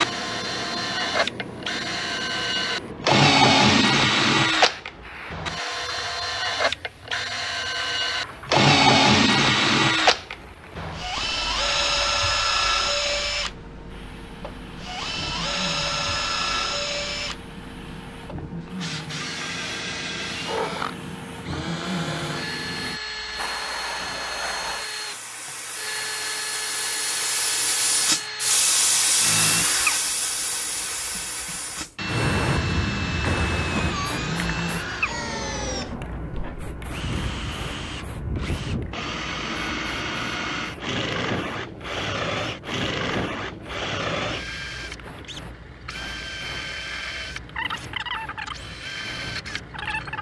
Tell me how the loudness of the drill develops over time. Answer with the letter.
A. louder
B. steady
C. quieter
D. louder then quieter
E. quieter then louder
C.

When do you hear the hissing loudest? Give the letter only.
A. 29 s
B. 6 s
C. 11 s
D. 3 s
A.